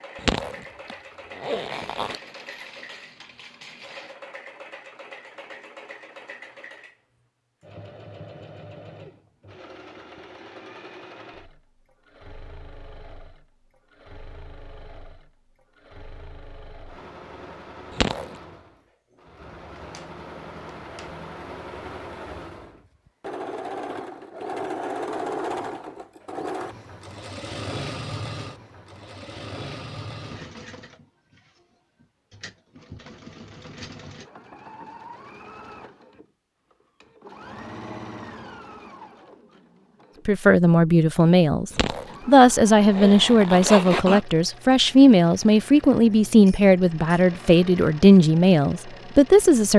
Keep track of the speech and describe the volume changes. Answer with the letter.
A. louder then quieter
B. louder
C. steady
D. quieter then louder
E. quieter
C.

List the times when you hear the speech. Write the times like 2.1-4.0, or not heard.
40.2-49.7.